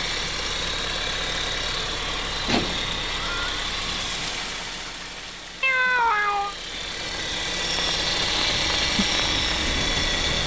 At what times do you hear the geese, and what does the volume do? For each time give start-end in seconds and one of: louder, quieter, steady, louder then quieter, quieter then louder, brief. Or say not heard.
not heard.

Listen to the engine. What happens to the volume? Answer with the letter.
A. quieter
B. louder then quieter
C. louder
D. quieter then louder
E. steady
D.